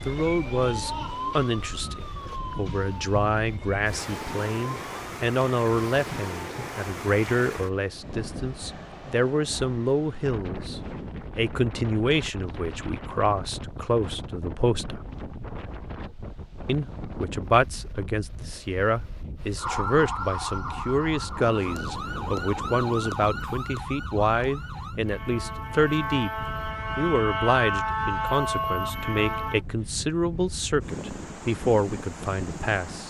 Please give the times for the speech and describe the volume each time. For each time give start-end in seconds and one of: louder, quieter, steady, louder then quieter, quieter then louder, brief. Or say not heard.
0.1-15.0 steady
16.6-33.0 steady.